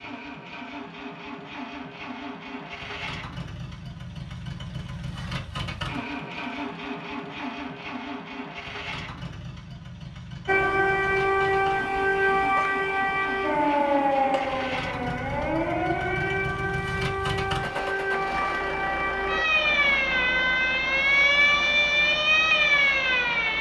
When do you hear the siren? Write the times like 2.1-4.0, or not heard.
10.4-23.5.